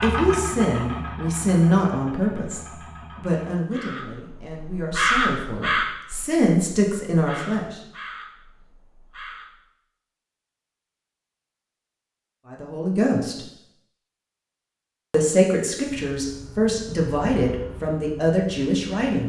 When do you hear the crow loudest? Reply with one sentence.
The volume of the crow peaks at 5 seconds.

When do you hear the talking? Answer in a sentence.
You can hear the talking from 0.0 to 7.7 s, from 12.5 to 13.4 s and from 15.1 to 19.2 s.